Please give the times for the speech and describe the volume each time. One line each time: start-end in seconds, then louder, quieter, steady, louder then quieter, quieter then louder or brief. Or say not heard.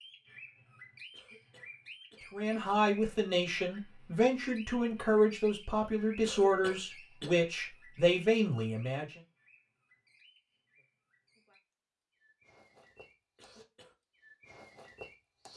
2.3-9.2 steady.